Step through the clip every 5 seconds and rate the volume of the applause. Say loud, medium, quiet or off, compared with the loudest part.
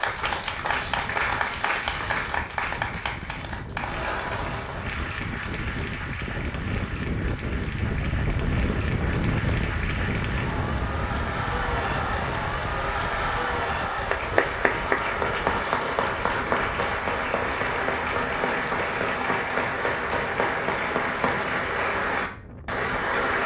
loud, medium, loud, loud, loud.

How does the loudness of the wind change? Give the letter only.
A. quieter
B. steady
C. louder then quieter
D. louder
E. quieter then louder
C.